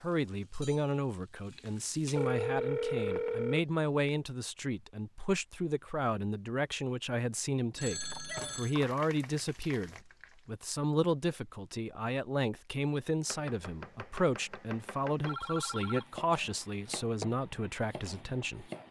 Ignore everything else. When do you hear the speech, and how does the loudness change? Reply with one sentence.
You can hear the speech from 0.0 to 18.7 s, at a steady volume.